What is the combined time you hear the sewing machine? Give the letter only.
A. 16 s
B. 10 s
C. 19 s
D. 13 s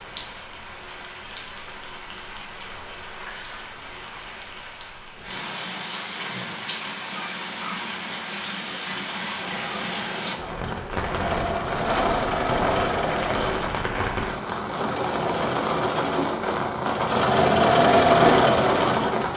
B.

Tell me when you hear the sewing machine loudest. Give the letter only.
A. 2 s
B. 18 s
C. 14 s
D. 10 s
B.